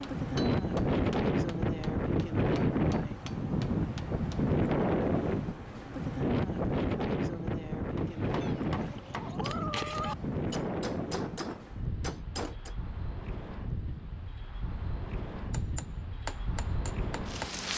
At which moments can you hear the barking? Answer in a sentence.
The barking can't be heard in this clip.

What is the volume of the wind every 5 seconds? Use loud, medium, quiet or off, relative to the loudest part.
loud, loud, medium, medium.